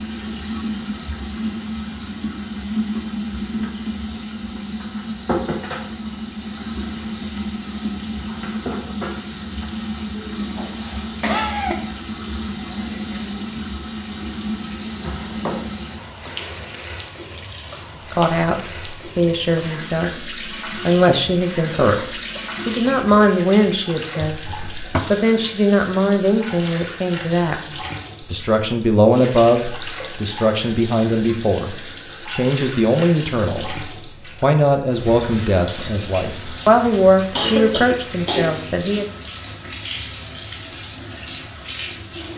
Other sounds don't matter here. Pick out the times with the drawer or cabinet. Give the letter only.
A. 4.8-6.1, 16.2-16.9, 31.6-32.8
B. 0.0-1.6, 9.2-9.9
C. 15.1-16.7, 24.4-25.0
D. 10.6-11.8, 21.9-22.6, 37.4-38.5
C.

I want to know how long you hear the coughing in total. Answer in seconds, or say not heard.
3 s.